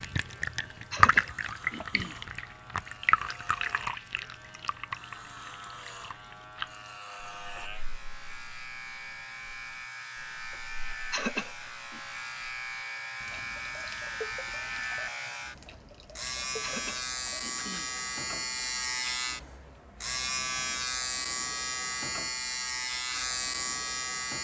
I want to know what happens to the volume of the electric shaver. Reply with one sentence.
The volume of the electric shaver goes up.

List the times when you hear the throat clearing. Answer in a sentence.
You can hear the throat clearing from 0.9 to 2.2 s, from 11.1 to 12.0 s and from 16.6 to 17.9 s.